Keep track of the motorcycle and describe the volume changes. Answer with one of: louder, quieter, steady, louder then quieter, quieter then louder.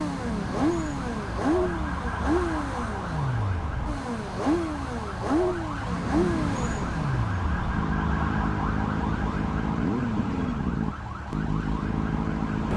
steady.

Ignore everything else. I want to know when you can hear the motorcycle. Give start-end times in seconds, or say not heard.
0.0-12.7.